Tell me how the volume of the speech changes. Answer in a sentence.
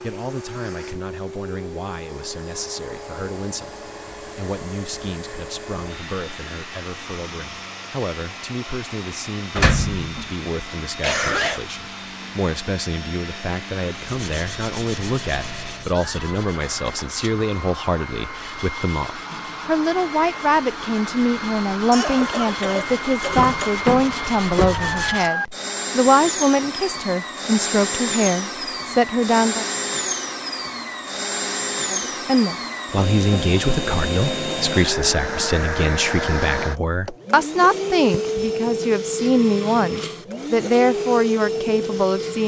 The volume of the speech goes up.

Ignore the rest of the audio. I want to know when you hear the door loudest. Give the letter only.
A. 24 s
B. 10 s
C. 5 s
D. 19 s
B.